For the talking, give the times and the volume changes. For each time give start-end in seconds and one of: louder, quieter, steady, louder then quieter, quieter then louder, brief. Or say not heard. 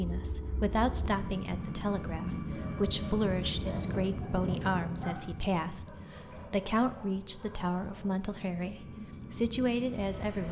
0.0-10.4 steady.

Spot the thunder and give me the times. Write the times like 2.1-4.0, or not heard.
3.3-5.2.